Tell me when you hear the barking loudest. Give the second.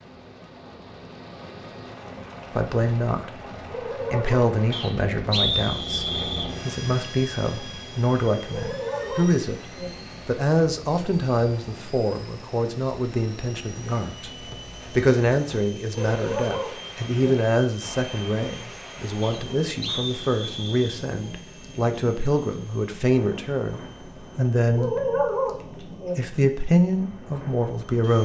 25 s.